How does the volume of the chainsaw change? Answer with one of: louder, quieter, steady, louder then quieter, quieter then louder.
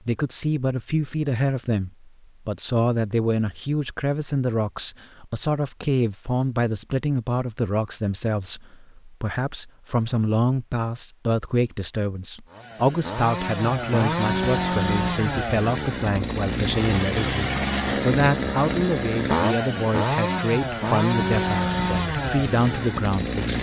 steady.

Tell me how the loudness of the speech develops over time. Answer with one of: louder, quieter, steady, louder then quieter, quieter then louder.
steady.